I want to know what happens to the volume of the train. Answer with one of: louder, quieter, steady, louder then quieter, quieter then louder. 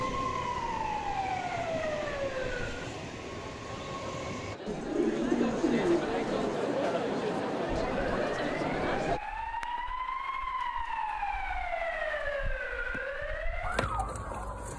steady.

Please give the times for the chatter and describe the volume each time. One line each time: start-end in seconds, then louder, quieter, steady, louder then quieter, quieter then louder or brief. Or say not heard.
0.0-9.2 louder.